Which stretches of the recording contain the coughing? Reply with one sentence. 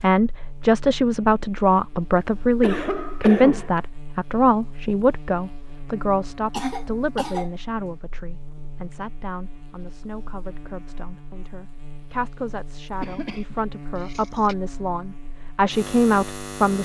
The coughing can be heard from 2.2 to 3.8 s, from 6.5 to 7.5 s and from 13.0 to 14.6 s.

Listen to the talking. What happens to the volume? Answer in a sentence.
The volume of the talking goes down, then up.